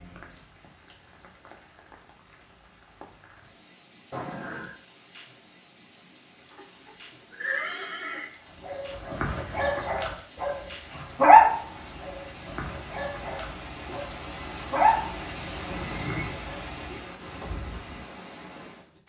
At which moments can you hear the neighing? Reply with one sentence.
You can hear the neighing from 4.1 to 4.8 s, from 6.5 to 8.2 s and from 15.7 to 16.4 s.